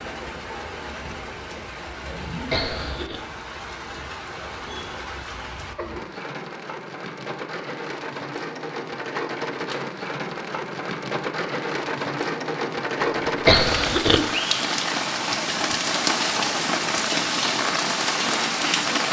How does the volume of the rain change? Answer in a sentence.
The volume of the rain goes up.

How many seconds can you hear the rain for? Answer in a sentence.
The rain can be heard for 19 seconds in total.